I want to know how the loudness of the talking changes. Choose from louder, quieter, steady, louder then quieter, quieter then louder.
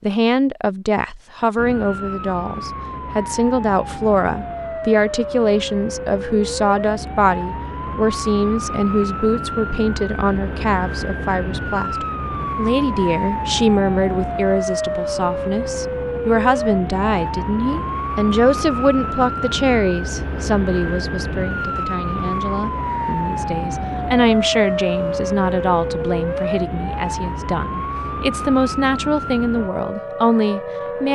steady.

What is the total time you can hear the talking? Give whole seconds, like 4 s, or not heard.
31 s.